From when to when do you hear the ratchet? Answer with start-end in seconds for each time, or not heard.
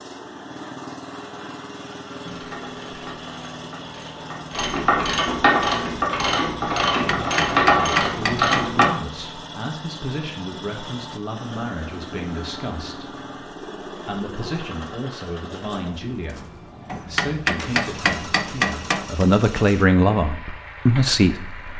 2.2-8.9.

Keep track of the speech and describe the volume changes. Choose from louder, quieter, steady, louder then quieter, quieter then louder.
louder.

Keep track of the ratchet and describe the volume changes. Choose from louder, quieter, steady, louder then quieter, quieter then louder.
louder.